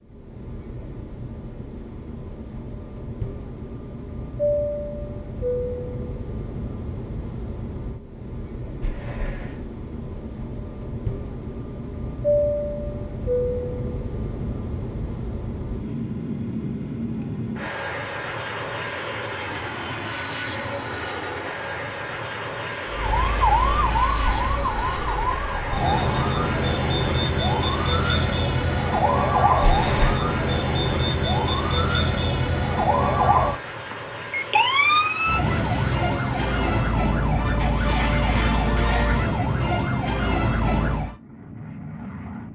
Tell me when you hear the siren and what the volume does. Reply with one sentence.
The siren can be heard from 22.9 to 41.1 s, at a steady volume.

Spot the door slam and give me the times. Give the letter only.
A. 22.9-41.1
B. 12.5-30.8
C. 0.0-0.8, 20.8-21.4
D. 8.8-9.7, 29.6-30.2
D.